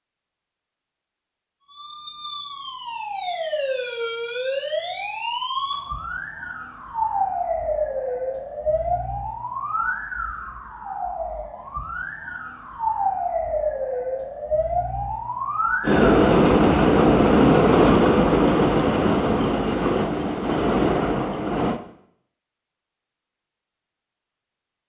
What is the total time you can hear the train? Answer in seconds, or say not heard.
6 s.